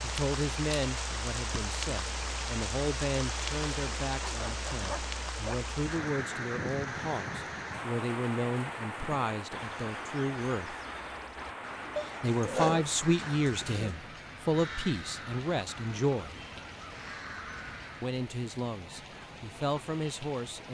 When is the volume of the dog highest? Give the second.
13 s.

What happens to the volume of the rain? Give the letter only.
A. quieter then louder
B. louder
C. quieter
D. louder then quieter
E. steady
C.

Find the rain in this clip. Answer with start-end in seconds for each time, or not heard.
0.0-20.7.